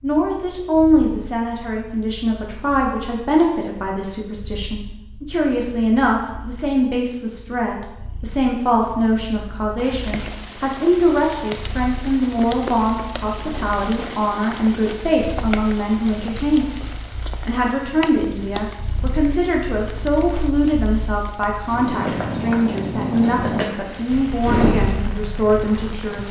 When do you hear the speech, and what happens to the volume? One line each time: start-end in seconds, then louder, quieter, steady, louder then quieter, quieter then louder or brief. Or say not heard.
0.0-16.6 steady
17.4-26.2 steady.